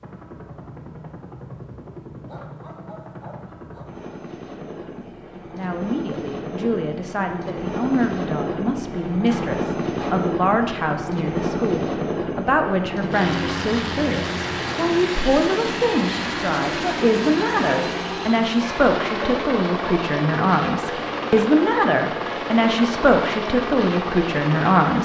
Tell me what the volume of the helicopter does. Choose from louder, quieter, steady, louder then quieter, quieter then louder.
louder.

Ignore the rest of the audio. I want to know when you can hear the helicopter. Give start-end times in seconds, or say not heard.
0.0-24.9.